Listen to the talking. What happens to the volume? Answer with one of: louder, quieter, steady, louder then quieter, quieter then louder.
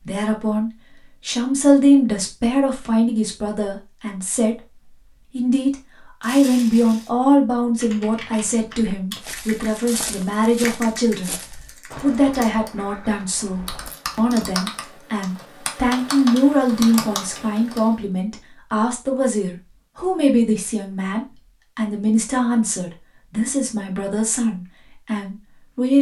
steady.